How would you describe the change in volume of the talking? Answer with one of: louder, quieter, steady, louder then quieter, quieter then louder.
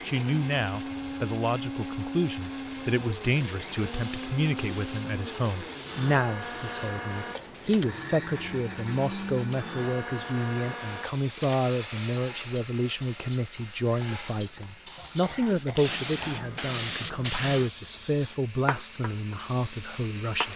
steady.